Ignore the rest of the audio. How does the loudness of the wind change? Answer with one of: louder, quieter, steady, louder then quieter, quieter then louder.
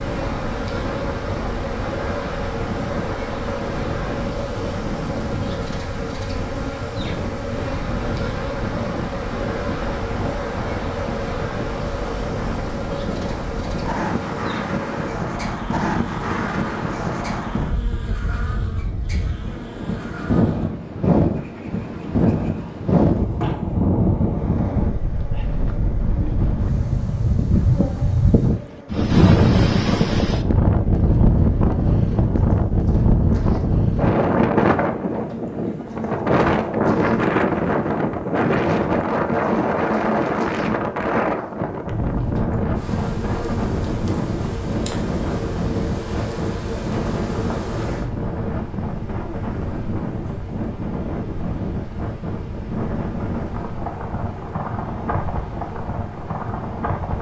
louder then quieter.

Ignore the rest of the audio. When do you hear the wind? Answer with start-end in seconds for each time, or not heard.
0.0-57.1.